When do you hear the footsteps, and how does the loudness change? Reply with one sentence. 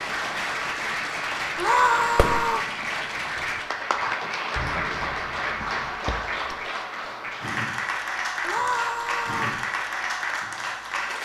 The footsteps can't be heard in this clip.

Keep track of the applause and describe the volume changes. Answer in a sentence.
The loudness of the applause stays about the same.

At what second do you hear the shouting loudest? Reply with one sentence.
The loudest moment of the shouting is at 2 seconds.